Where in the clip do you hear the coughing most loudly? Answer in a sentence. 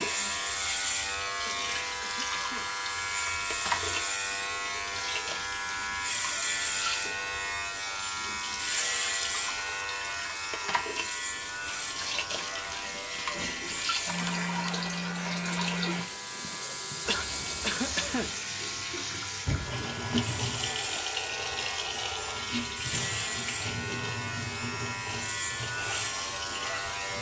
The loudest moment of the coughing is at 18 seconds.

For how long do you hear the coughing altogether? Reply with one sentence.
You can hear the coughing for 3 seconds altogether.